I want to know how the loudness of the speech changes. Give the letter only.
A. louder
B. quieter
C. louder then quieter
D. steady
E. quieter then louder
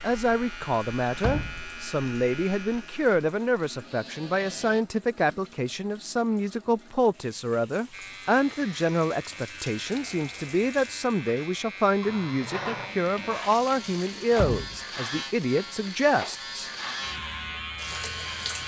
D.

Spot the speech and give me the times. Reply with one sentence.
The speech can be heard from 0.0 to 16.7 s.